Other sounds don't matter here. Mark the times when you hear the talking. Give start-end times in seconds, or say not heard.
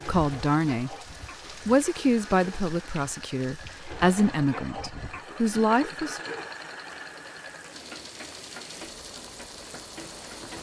0.1-0.9, 1.6-6.2.